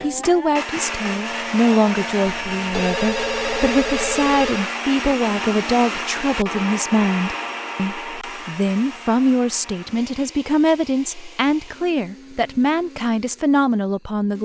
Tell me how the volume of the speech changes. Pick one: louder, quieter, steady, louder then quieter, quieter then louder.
steady.